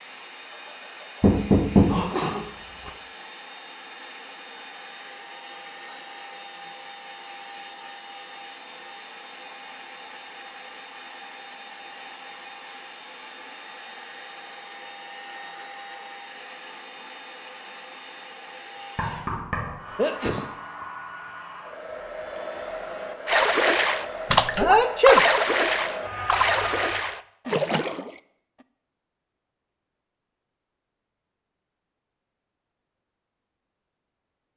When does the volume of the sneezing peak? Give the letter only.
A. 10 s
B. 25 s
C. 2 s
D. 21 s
B.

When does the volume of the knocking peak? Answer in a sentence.
The loudest moment of the knocking is at 2 seconds.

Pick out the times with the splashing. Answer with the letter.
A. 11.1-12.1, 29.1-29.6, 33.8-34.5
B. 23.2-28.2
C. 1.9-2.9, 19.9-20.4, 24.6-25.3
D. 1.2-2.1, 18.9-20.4
B.